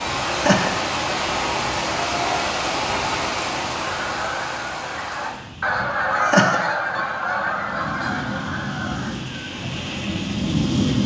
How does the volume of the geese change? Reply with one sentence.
The volume of the geese goes up, then down.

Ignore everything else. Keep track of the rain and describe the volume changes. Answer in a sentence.
The volume of the rain goes down, then up.